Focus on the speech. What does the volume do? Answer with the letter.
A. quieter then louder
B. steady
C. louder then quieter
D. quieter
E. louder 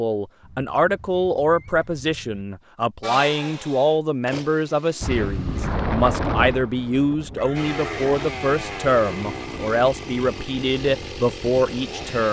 B.